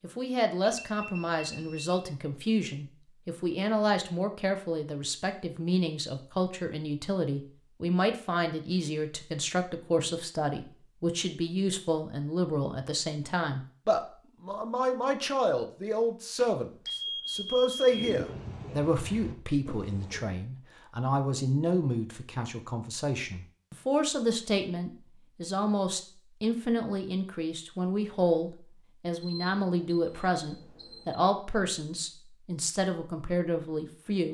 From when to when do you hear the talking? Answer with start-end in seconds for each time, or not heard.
0.0-34.2.